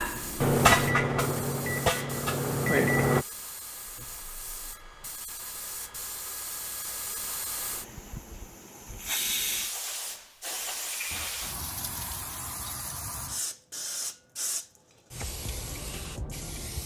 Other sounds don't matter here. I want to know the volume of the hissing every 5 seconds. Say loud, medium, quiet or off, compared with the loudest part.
medium, loud, loud, loud.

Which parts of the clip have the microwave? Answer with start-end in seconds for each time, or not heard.
0.0-3.2.